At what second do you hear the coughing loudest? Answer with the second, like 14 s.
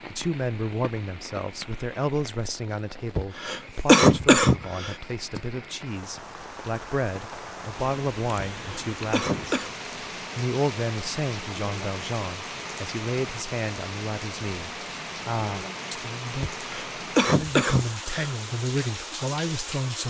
4 s.